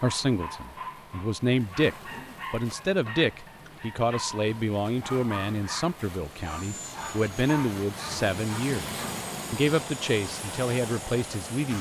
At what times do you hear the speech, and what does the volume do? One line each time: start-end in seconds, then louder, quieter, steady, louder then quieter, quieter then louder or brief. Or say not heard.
0.0-11.7 steady.